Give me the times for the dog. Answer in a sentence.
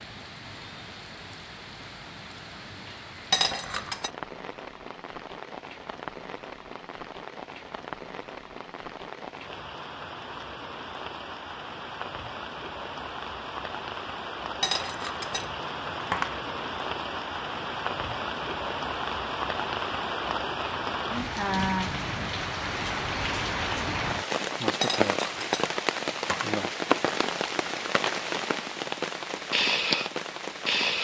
You can't hear the dog here.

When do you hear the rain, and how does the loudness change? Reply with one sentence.
The rain can be heard from 0.0 to 30.9 s, getting louder.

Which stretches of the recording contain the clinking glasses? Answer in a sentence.
The clinking glasses can be heard from 3.3 to 4.1 s, from 14.6 to 16.4 s and from 24.8 to 26.6 s.